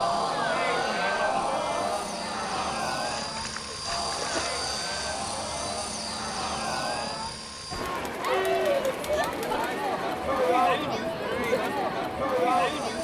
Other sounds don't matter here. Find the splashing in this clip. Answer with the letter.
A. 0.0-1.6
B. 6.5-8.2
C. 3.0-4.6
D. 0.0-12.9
C.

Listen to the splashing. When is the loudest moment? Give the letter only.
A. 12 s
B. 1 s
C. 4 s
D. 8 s
C.